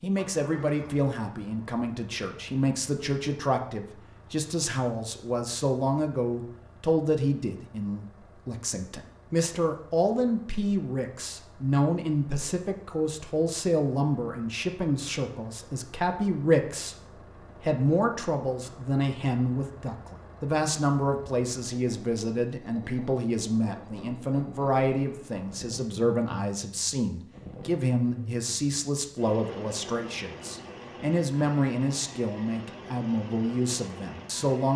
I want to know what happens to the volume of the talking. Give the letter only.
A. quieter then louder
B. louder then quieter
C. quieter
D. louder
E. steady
E.